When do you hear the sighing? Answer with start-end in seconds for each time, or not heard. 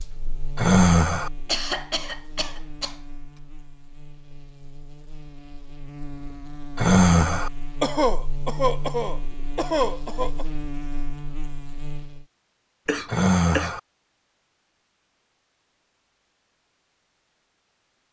0.6-1.3, 6.8-7.5, 13.1-13.8.